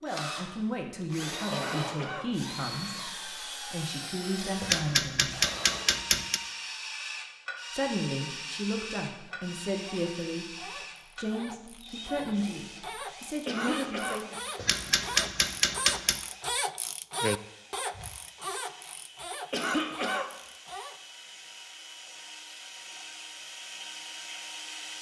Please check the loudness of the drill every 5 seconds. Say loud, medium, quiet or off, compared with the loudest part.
loud, loud, medium, quiet, medium.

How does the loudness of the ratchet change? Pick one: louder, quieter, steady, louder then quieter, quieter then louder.
louder then quieter.